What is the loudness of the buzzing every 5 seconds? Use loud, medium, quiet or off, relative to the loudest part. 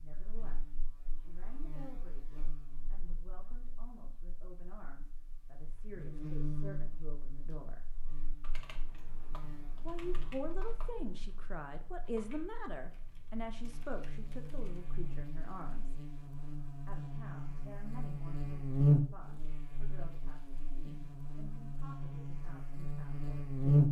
quiet, quiet, quiet, loud, loud.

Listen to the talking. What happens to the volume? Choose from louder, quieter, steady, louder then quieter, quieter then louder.
louder then quieter.